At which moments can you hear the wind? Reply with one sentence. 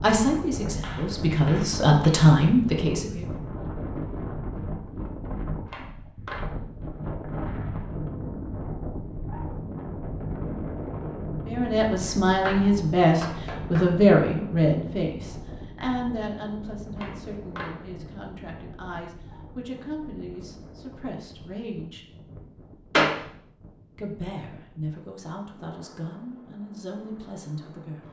You can hear the wind from 0.0 to 28.0 s.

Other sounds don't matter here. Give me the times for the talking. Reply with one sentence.
The talking can be heard from 0.0 to 3.2 s, from 11.4 to 22.1 s and from 23.9 to 28.0 s.